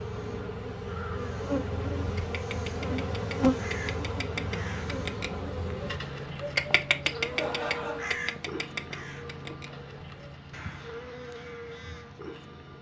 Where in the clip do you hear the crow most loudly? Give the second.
7 s.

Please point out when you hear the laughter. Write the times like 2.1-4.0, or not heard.
7.2-8.2.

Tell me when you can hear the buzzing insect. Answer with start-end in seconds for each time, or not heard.
0.0-12.7.